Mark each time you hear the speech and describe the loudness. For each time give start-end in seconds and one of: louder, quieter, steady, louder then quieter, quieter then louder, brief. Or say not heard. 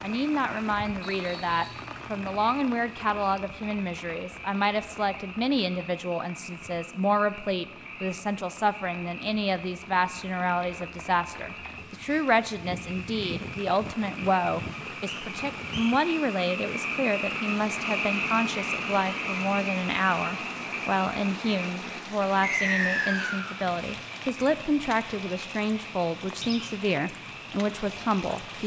0.0-28.6 steady.